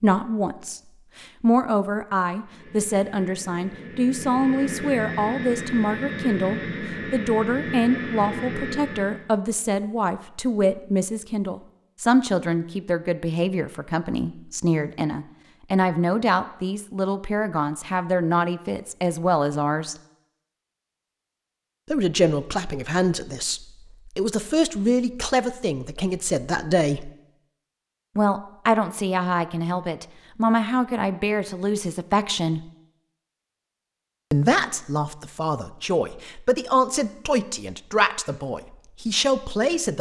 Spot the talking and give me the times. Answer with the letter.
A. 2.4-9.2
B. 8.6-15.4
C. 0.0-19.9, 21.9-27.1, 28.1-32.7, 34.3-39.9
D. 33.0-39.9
C.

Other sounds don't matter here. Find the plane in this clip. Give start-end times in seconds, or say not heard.
2.4-9.2.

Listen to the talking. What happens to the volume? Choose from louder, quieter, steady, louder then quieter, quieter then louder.
steady.